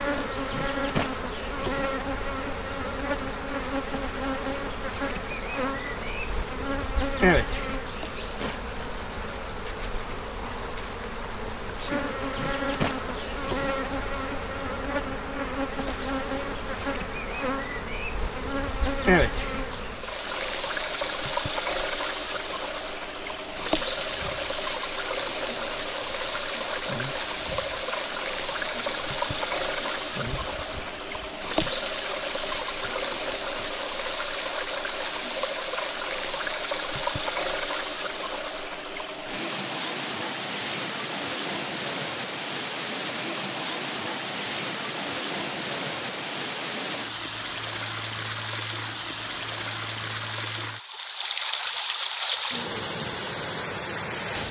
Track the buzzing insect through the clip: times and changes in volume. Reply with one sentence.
The buzzing insect can be heard from 0.0 to 35.7 s, getting quieter.